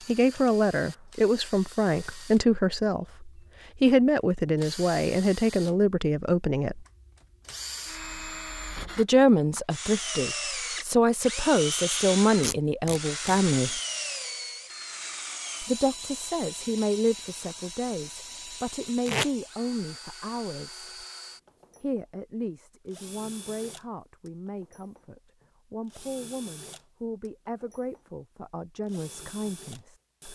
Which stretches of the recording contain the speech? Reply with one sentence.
The speech can be heard from 0.1 to 6.8 s, from 8.9 to 13.8 s, from 15.6 to 21.1 s and from 21.8 to 30.3 s.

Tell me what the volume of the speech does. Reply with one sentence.
The volume of the speech goes down.